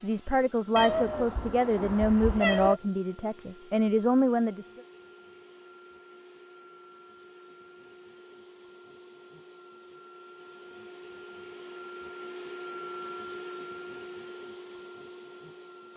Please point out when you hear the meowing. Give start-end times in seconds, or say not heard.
0.8-2.8.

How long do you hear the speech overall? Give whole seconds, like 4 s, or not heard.
5 s.